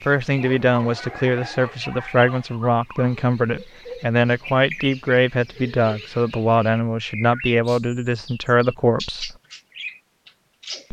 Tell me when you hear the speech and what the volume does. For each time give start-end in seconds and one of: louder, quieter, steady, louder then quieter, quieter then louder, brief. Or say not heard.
0.1-9.3 steady.